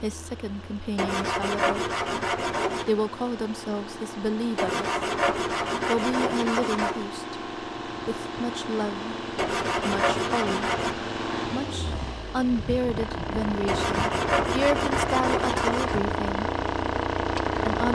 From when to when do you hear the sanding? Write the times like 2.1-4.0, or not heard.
0.9-2.9, 4.5-7.0, 9.3-10.9, 13.7-16.0.